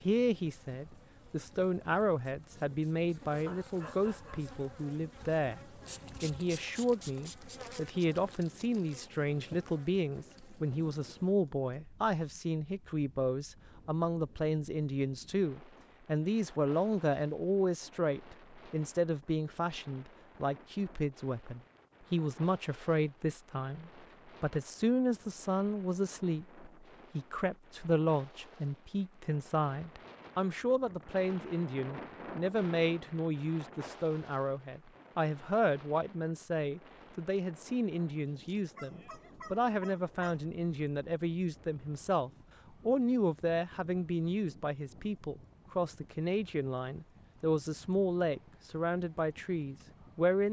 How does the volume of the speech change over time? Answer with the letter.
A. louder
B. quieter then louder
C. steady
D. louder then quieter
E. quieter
C.